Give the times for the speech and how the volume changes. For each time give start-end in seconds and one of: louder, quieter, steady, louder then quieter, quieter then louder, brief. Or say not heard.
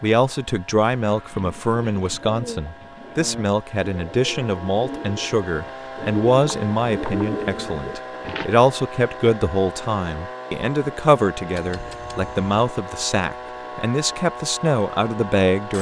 0.0-15.7 steady.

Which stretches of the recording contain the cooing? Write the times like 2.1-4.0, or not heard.
1.0-8.4.